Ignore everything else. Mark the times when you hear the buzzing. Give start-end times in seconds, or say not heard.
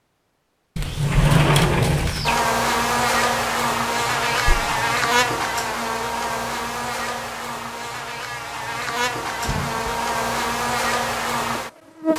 2.2-12.1.